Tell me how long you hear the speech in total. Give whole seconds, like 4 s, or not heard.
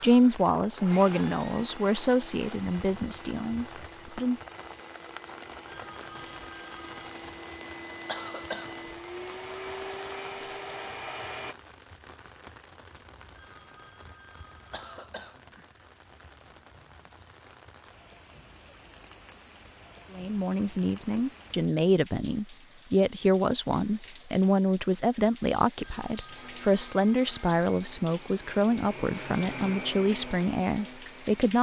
16 s.